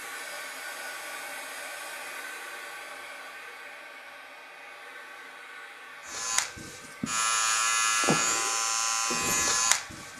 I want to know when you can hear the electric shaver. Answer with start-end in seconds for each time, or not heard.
6.0-10.1.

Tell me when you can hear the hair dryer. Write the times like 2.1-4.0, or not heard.
0.0-10.1.